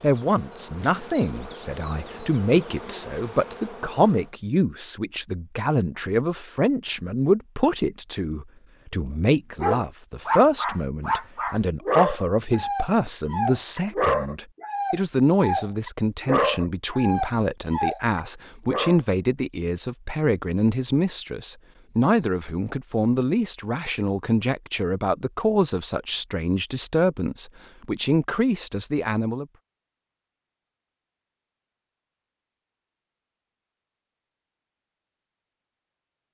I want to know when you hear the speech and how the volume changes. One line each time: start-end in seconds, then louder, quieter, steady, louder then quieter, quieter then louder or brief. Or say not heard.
0.0-29.4 steady.